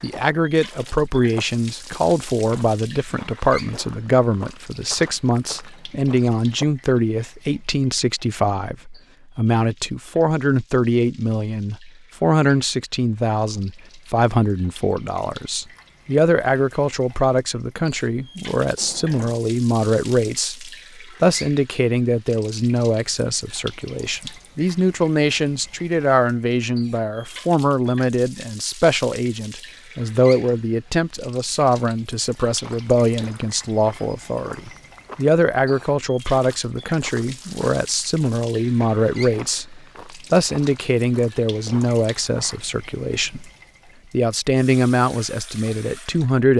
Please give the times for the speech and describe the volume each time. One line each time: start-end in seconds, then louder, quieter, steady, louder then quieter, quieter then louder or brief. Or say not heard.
0.0-43.5 steady
44.1-46.5 brief.